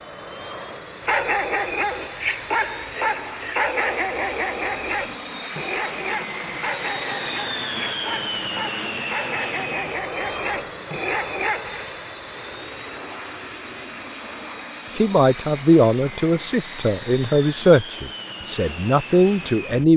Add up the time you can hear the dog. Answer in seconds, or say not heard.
11 s.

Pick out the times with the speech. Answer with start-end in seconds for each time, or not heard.
14.9-19.9.